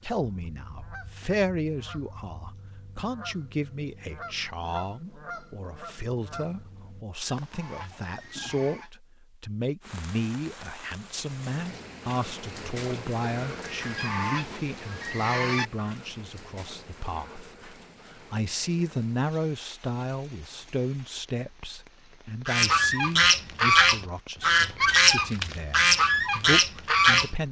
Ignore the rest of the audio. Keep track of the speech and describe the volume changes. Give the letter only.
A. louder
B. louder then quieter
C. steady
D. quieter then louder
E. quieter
C.